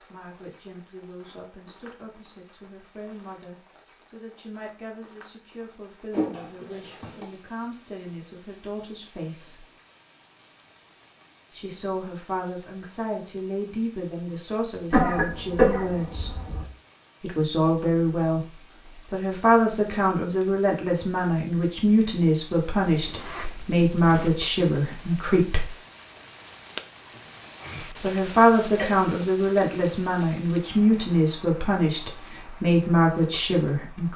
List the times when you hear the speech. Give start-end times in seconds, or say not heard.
0.1-9.7, 11.5-16.4, 17.2-25.7, 27.9-34.1.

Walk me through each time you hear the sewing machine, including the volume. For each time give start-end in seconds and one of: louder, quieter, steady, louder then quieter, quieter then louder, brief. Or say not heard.
not heard.